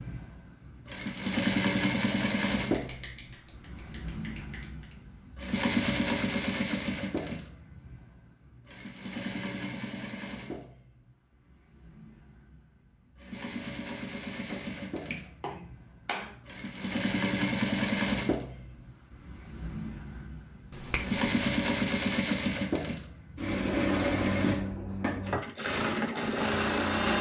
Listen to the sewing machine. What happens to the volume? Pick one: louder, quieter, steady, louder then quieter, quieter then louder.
quieter then louder.